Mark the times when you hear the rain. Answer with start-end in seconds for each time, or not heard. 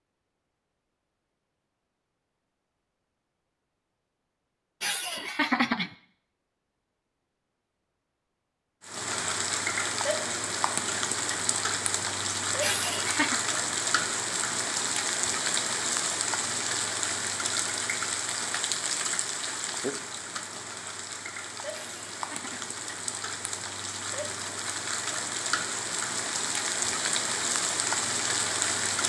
8.8-29.0.